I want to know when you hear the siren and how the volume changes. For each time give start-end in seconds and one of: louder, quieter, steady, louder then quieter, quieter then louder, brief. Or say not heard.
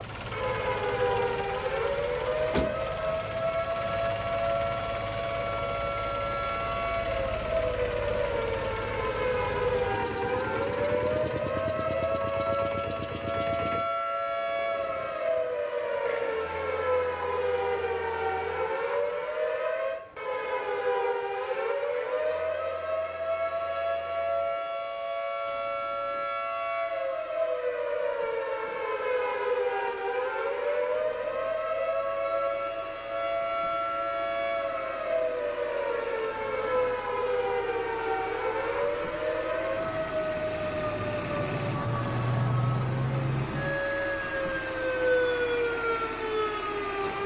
0.0-47.2 steady.